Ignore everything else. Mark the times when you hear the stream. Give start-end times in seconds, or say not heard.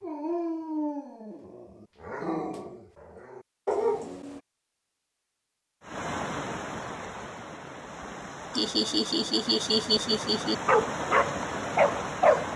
5.8-12.5.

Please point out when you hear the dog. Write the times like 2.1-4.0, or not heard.
0.0-4.4, 10.7-12.5.